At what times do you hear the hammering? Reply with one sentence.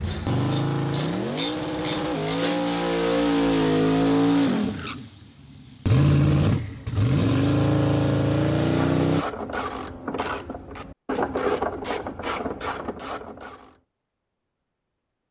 The hammering can't be heard in this clip.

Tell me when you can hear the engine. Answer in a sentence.
The engine can be heard from 0.0 to 9.2 s.